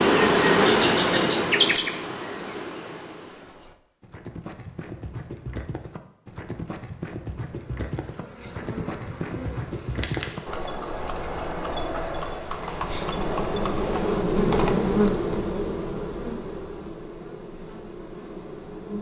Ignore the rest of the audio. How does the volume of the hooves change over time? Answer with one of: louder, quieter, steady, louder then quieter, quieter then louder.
louder.